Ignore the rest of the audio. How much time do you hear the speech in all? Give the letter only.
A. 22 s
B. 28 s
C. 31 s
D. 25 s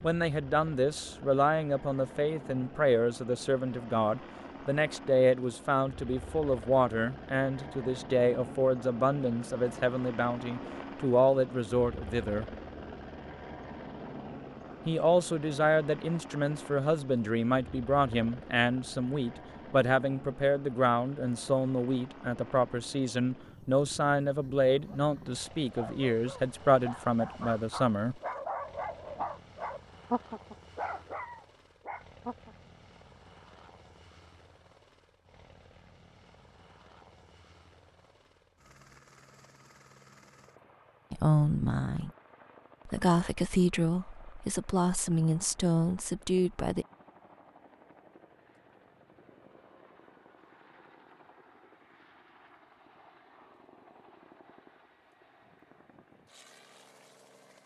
C.